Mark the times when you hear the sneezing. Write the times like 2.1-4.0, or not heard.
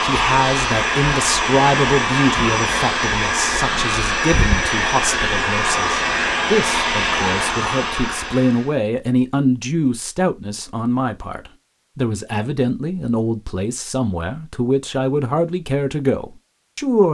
not heard.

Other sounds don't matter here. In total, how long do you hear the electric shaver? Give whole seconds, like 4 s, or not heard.
not heard.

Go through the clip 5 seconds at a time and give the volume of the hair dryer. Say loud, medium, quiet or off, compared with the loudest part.
loud, loud, off, off.